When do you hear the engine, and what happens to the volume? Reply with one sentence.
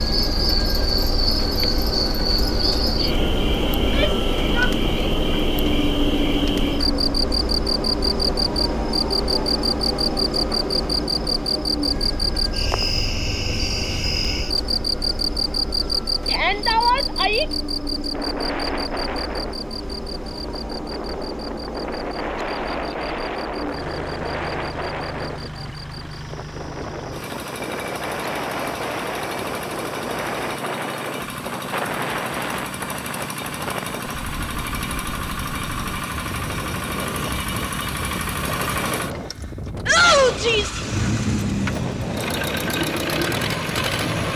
You can hear the engine from 0.0 to 44.3 s, getting quieter then louder.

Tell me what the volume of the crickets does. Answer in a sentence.
The volume of the crickets goes down.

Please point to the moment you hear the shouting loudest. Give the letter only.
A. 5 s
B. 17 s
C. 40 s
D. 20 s
C.